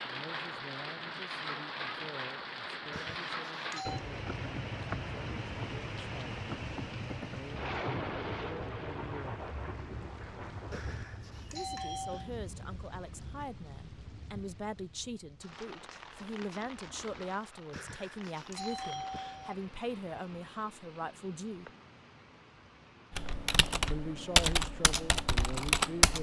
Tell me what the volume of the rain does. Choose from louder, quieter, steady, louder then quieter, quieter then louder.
quieter.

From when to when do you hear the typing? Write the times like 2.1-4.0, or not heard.
3.9-8.1, 23.1-26.1.